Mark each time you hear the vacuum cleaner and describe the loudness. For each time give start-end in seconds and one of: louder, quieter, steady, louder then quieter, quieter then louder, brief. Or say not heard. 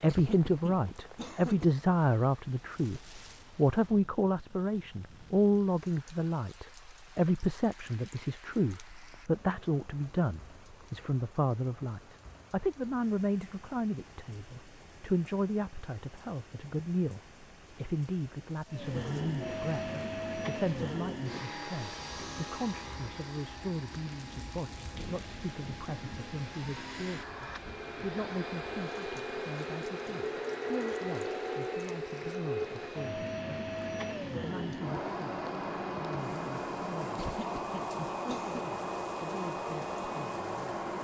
18.6-40.9 quieter then louder.